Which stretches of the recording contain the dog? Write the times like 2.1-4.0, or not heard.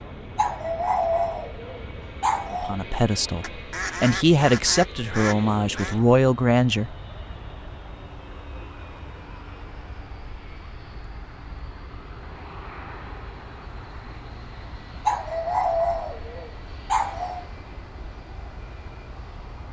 0.3-2.8, 15.1-17.4.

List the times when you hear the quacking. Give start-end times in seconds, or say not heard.
3.4-6.0.